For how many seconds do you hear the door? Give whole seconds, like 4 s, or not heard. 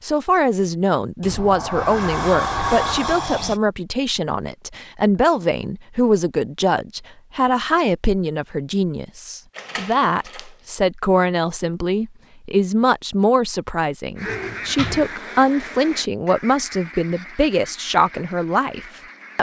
4 s.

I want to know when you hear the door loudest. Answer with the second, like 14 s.
3 s.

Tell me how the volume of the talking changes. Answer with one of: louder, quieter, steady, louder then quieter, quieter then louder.
steady.